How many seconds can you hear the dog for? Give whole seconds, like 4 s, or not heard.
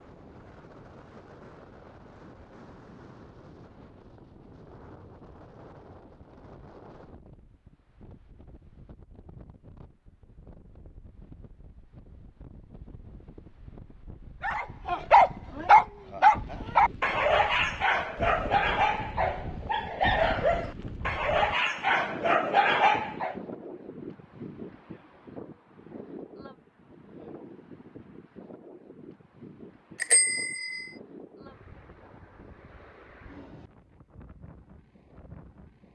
9 s.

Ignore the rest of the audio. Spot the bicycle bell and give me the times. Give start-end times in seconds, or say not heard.
30.0-30.9.